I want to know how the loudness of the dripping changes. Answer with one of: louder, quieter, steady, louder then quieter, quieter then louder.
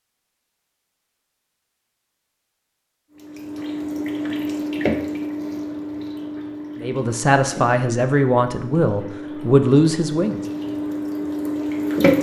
quieter then louder.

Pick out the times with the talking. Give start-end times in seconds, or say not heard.
6.8-10.4.